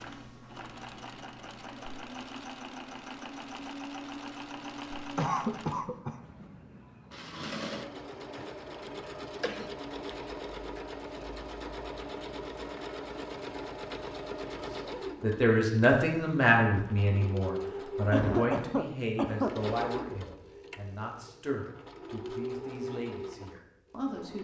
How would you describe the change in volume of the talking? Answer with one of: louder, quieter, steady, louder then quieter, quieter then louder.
quieter.